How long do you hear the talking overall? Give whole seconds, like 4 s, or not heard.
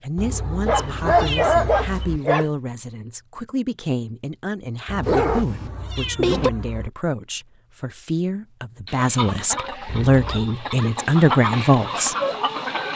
12 s.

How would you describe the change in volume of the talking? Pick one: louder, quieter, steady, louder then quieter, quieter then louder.
louder.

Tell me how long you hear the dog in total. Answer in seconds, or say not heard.
5 s.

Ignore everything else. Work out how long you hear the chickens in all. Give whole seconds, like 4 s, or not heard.
4 s.